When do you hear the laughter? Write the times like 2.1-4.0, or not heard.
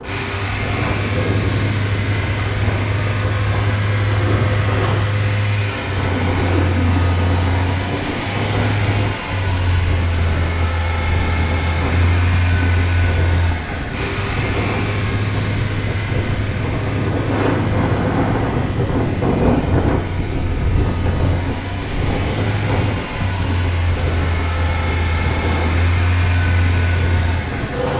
6.5-7.0.